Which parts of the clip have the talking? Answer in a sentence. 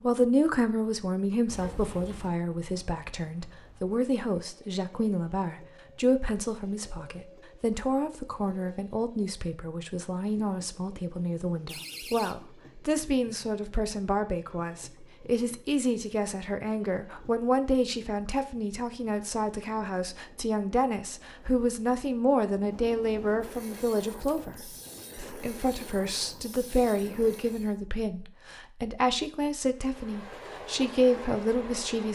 You can hear the talking from 0.0 to 32.1 s.